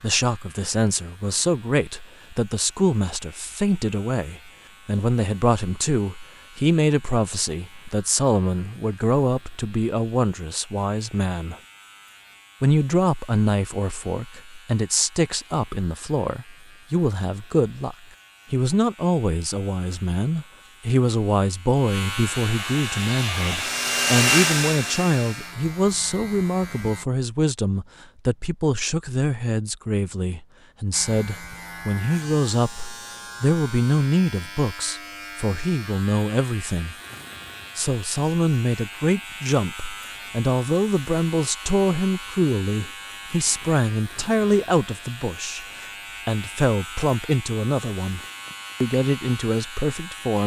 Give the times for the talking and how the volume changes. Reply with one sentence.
The talking can be heard from 0.0 to 11.6 s, at a steady volume; from 12.6 to 37.0 s, at a steady volume; from 37.8 to 48.2 s, at a steady volume; and briefly from 48.8 to 50.4 s.